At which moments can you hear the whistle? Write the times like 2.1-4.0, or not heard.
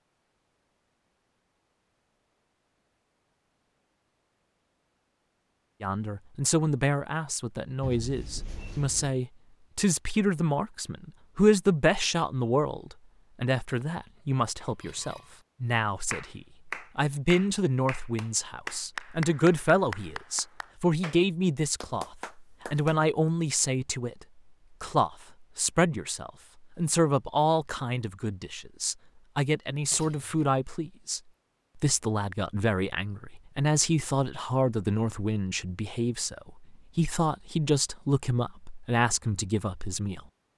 not heard.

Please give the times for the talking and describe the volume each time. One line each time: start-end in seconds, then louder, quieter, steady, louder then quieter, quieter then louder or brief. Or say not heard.
5.8-40.2 steady.